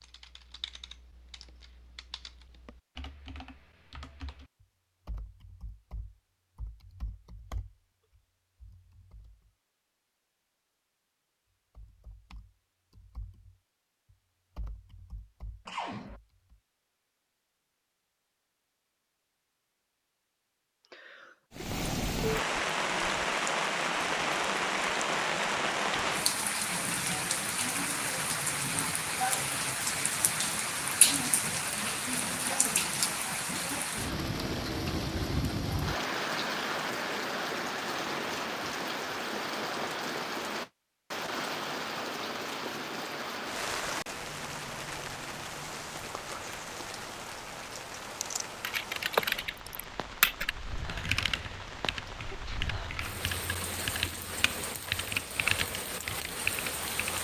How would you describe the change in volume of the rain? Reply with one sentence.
The loudness of the rain goes down.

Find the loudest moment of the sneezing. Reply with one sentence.
The loudest moment of the sneezing is at 16 seconds.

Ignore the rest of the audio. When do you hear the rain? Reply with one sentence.
The rain can be heard from 21.5 to 57.1 s.